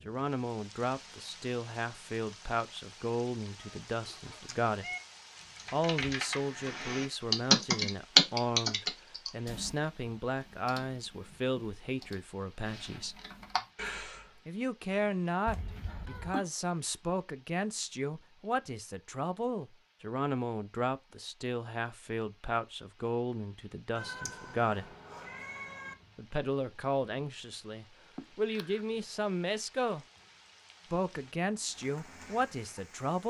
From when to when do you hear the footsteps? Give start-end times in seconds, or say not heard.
not heard.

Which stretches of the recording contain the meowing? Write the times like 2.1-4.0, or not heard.
3.6-5.0, 15.4-16.4, 23.9-25.9.